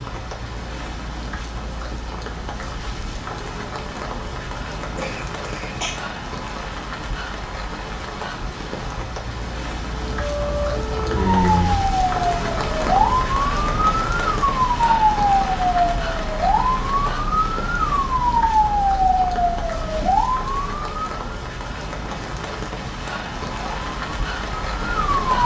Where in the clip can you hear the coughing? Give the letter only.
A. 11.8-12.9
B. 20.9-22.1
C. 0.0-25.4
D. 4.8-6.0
D.